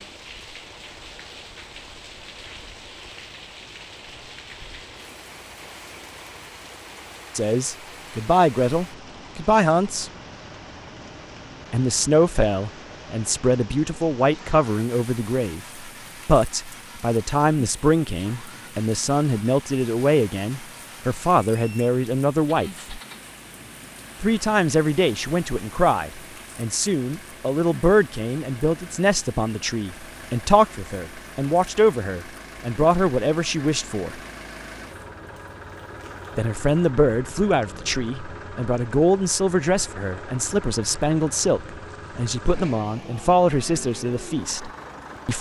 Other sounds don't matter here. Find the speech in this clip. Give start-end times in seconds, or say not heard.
7.3-10.1, 11.7-23.0, 24.2-34.2, 36.4-45.3.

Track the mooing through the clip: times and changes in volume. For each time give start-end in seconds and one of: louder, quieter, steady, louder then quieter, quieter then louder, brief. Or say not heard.
not heard.